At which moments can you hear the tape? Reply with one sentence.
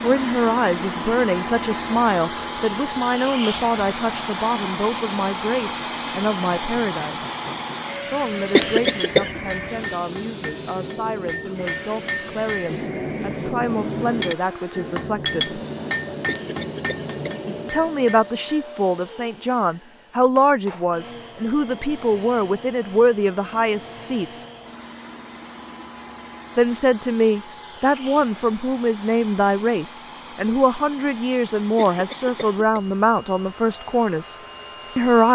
You can't hear the tape here.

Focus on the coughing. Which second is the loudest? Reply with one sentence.
The volume of the coughing peaks at 9 seconds.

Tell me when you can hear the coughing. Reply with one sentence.
You can hear the coughing from 8.5 to 9.4 s, from 16.2 to 17.6 s and from 31.8 to 32.8 s.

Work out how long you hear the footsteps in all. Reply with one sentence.
The footsteps can't be heard in this clip.